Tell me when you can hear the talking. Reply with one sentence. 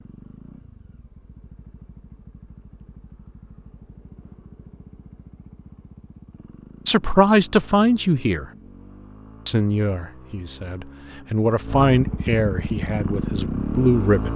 You can hear the talking from 6.8 to 8.4 s and from 9.4 to 14.3 s.